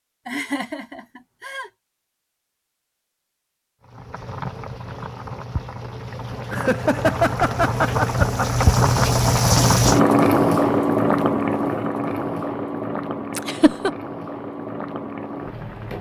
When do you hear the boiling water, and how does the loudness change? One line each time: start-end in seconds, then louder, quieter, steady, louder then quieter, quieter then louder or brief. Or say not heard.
3.8-15.9 louder then quieter.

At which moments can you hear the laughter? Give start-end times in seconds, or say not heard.
0.2-1.7, 6.5-9.1, 13.3-13.9.